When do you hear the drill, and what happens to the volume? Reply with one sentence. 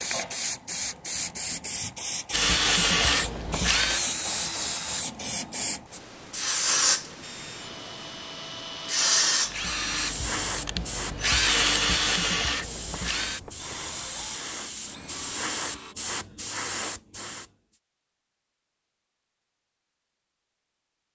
You can hear the drill briefly from 2.3 to 5.0 s; and from 7.2 to 15.9 s, getting louder then quieter.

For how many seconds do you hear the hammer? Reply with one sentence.
The hammer can't be heard in this clip.